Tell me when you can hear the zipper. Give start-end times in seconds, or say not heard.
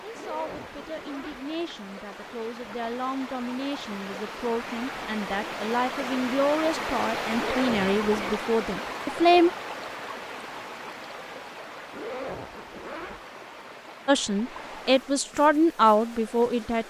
0.1-1.4, 7.3-8.4, 11.9-13.2.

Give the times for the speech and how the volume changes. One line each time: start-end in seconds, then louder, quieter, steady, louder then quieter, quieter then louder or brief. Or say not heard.
0.0-9.5 louder
14.1-16.8 brief.